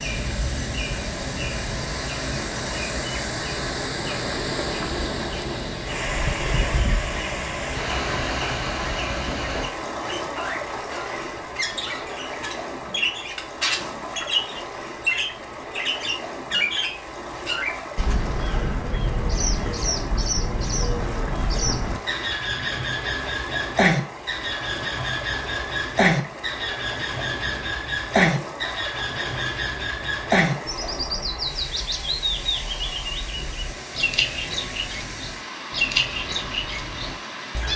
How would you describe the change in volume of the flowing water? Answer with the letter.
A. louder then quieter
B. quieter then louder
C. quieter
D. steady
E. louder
C.